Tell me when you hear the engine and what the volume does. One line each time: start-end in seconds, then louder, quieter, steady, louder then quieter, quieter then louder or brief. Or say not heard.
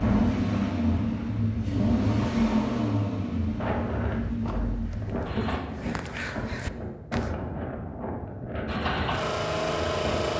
0.0-5.6 quieter
8.7-10.3 brief.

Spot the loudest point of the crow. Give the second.
6 s.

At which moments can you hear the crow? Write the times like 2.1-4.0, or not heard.
4.8-7.3.